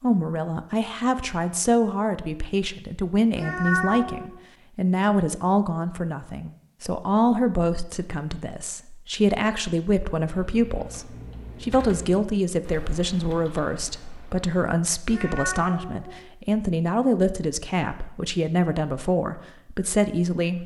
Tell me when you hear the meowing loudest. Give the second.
4 s.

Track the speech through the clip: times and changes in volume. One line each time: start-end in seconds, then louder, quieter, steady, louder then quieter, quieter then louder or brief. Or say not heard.
0.0-20.6 steady.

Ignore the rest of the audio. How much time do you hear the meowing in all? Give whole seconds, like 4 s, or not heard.
2 s.